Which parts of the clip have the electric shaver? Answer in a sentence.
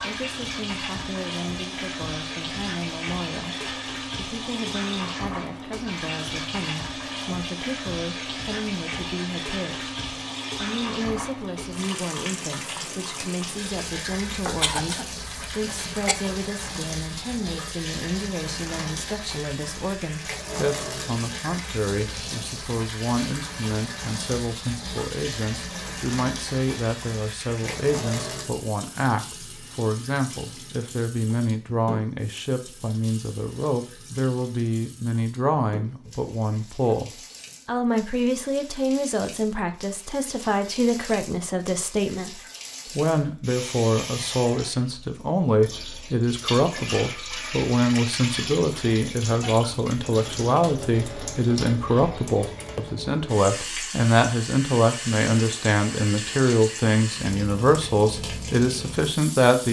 You can't hear the electric shaver here.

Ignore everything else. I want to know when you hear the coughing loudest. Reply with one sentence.
The loudest moment of the coughing is at 15 seconds.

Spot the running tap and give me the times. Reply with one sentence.
The running tap can be heard from 0.0 to 59.6 s.